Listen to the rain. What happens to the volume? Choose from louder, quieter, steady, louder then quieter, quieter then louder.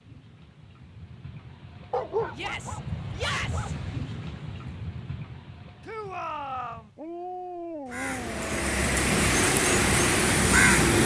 louder then quieter.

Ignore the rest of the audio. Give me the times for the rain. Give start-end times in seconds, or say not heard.
0.0-7.0.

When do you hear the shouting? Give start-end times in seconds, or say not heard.
2.3-3.8, 5.8-6.9.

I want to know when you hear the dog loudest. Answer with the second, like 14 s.
2 s.